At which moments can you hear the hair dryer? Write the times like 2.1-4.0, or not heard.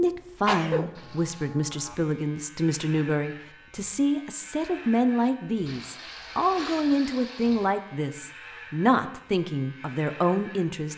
not heard.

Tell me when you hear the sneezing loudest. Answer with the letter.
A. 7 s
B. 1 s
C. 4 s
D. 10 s
B.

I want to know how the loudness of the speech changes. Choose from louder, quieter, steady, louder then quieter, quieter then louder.
steady.